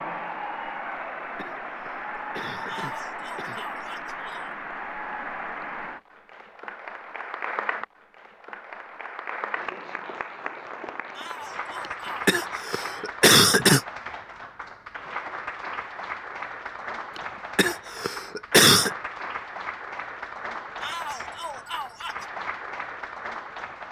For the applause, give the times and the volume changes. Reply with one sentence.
The applause can be heard from 0.0 to 23.8 s, at a steady volume.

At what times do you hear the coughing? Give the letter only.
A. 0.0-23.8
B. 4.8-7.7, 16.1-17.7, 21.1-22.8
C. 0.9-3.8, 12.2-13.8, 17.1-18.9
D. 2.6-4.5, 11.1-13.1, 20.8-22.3
C.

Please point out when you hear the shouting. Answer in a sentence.
The shouting can be heard from 2.6 to 4.5 s, from 11.1 to 13.1 s and from 20.8 to 22.3 s.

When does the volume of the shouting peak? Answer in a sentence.
The loudest moment of the shouting is at 21 seconds.